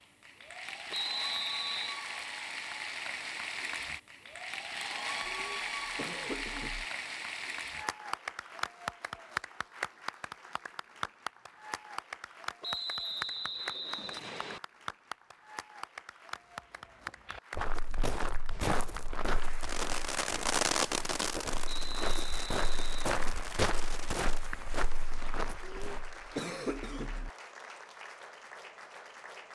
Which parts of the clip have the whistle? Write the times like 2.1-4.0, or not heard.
0.9-2.0, 12.6-14.6, 21.6-23.1.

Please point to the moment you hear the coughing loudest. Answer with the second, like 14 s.
27 s.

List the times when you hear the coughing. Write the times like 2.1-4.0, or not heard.
5.2-6.8, 25.6-27.3.